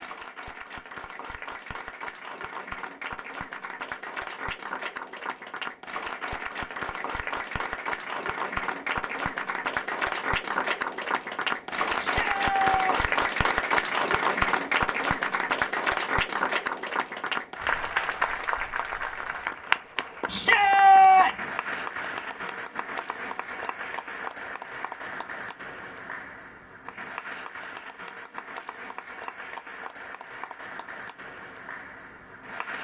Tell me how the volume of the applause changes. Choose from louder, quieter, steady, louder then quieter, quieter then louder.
louder then quieter.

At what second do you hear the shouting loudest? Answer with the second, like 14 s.
21 s.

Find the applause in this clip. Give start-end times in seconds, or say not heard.
0.0-32.7.